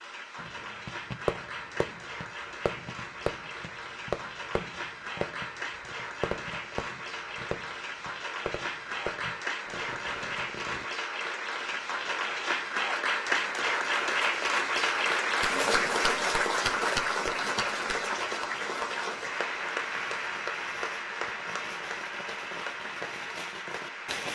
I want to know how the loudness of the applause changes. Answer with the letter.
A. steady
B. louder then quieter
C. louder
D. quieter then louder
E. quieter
B.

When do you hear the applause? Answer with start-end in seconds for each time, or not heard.
0.0-24.3.